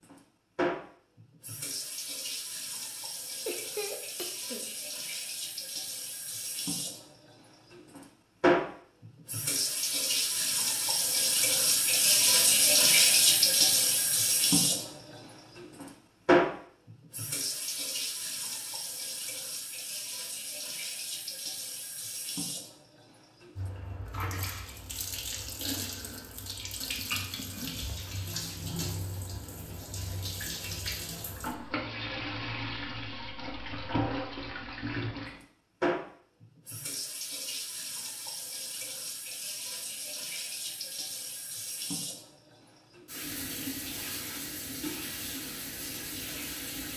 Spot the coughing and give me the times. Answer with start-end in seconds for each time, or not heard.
3.5-4.7.